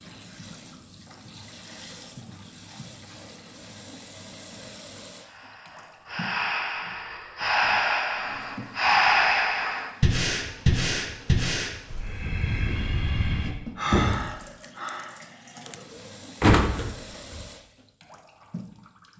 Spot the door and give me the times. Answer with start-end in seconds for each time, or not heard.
16.4-17.4.